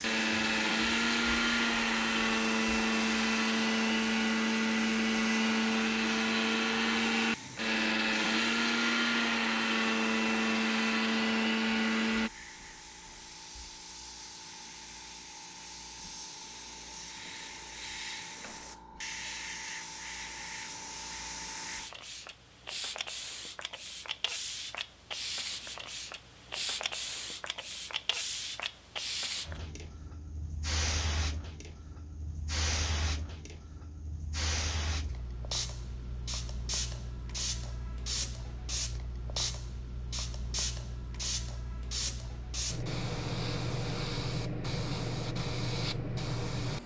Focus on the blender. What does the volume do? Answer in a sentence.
The volume of the blender stays about the same.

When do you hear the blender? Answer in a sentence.
You can hear the blender from 0.0 to 12.3 s.